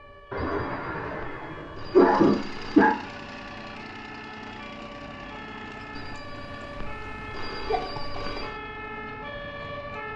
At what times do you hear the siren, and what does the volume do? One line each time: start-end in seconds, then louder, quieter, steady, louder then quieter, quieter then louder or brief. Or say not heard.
0.0-10.1 louder.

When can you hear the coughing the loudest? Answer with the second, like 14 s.
2 s.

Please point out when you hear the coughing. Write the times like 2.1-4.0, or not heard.
0.3-3.0, 7.7-8.4.